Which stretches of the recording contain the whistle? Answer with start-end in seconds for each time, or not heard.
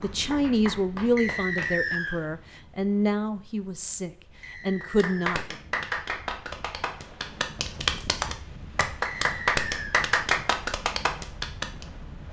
1.1-2.2, 4.4-5.2, 9.1-10.1.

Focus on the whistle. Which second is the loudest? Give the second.
2 s.